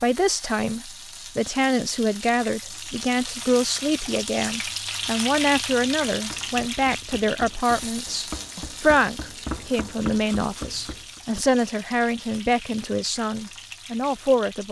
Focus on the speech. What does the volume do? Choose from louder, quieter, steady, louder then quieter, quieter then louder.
steady.